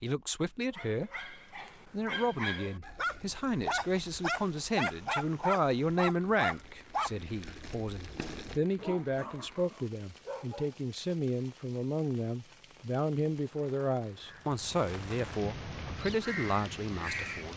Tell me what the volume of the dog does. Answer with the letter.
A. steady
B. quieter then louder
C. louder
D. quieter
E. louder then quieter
E.